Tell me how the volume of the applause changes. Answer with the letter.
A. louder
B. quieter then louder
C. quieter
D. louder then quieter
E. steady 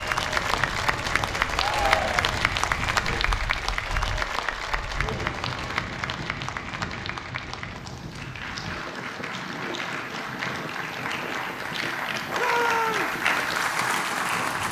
B.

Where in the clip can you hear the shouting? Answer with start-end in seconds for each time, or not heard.
1.6-2.4, 5.0-5.4, 12.3-13.2.